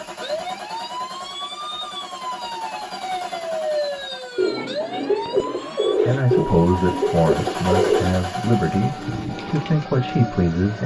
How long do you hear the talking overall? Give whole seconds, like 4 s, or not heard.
5 s.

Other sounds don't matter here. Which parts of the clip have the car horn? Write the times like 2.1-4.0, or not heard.
not heard.